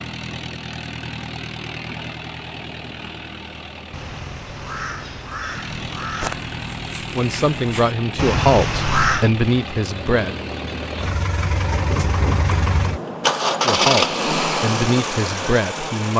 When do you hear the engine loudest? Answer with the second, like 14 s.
14 s.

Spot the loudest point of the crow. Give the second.
9 s.